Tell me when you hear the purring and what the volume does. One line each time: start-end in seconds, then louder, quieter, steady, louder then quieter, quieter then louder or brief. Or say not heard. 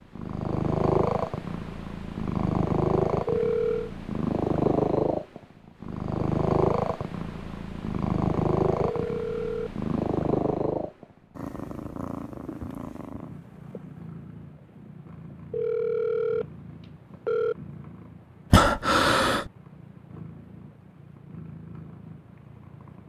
0.1-23.0 quieter.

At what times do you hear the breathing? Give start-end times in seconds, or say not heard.
18.5-19.5.